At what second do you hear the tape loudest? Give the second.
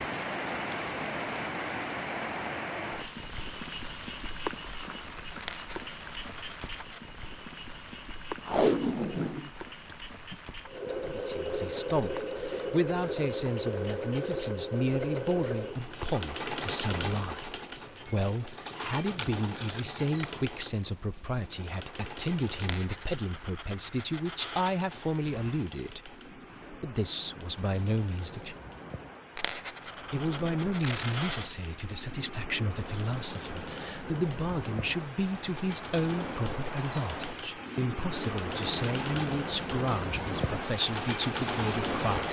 9 s.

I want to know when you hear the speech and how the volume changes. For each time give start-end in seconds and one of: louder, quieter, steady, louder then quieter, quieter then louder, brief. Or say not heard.
11.0-28.6 steady
30.1-42.2 steady.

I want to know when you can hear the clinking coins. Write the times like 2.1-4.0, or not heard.
5.4-7.0, 22.6-24.8, 29.4-31.5.